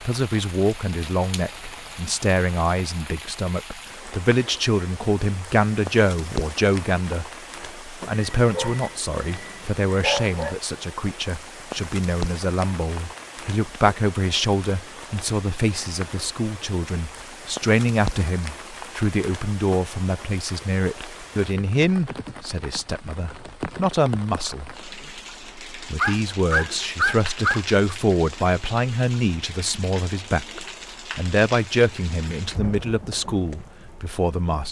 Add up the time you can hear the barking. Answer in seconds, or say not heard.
4 s.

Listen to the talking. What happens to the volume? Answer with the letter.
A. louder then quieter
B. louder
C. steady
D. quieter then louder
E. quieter
C.